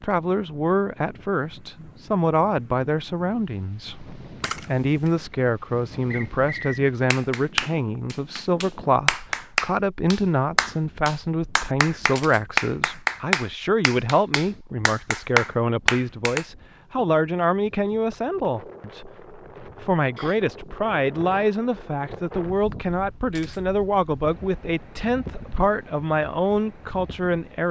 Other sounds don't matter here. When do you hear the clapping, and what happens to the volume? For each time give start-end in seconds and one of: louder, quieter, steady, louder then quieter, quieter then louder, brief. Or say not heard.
7.1-16.4 steady.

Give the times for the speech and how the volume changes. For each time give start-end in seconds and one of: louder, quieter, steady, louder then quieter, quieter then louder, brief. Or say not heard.
0.0-27.6 steady.